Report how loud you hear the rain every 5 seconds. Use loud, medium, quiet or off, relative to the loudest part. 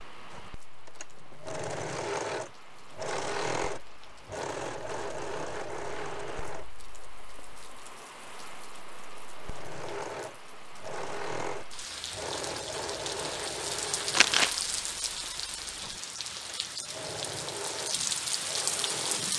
quiet, quiet, loud, loud.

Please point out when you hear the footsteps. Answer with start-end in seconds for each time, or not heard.
not heard.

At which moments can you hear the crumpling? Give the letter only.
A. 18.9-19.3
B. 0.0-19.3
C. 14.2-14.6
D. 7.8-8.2
C.